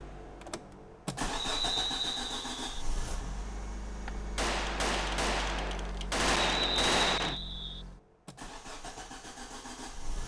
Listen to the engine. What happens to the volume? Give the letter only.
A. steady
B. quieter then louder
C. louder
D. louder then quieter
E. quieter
E.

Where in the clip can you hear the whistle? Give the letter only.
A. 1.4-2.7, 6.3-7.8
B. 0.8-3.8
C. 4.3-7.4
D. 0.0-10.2
A.